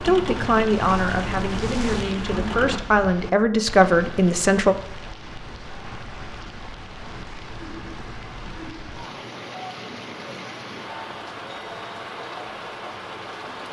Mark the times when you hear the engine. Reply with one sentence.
The engine can be heard from 0.0 to 2.8 s.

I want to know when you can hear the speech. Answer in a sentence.
The speech can be heard from 0.0 to 4.8 s.